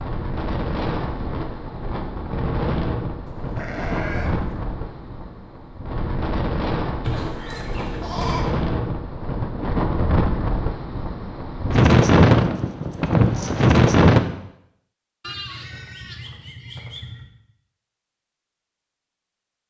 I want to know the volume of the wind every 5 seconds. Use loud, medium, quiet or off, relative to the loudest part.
medium, medium, loud, off.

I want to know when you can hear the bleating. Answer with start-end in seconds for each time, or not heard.
3.4-4.5, 7.0-8.5, 15.2-17.2.